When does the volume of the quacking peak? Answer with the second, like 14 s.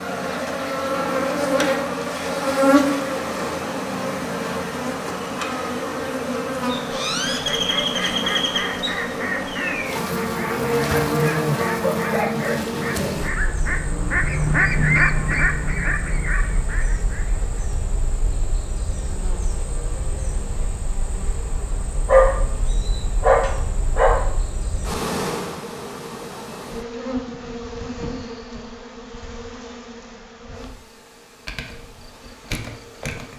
15 s.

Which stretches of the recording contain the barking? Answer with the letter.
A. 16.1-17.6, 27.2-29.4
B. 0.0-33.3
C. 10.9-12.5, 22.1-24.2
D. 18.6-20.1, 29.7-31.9
C.